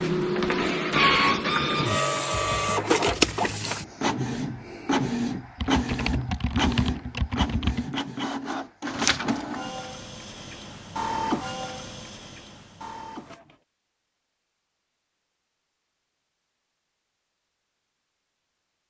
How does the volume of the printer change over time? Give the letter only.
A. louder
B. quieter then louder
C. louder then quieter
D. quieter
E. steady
D.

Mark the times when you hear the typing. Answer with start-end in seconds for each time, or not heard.
5.5-8.0.